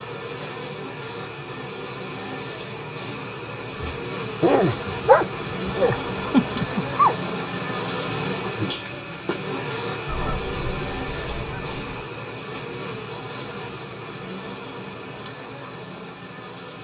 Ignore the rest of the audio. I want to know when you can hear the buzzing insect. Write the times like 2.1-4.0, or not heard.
0.0-16.7.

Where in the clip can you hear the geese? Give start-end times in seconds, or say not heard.
10.1-11.9.